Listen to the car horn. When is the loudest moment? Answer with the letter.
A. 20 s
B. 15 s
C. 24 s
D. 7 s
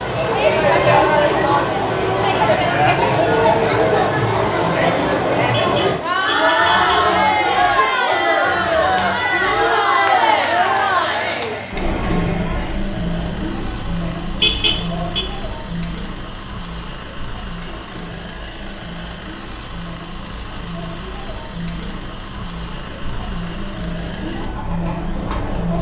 B.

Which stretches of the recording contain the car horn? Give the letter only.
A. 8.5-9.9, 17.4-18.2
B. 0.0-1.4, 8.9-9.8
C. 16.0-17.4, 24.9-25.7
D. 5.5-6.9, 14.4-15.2
D.